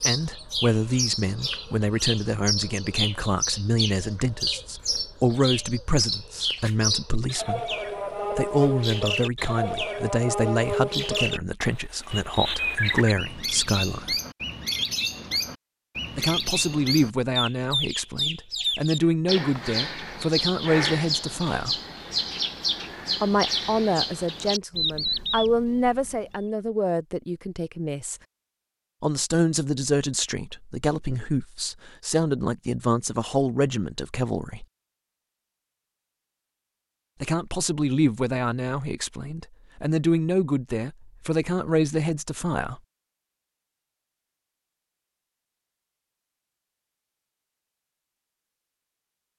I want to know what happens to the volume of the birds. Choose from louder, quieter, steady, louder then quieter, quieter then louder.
steady.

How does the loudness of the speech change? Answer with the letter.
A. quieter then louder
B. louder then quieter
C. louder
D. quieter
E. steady
E.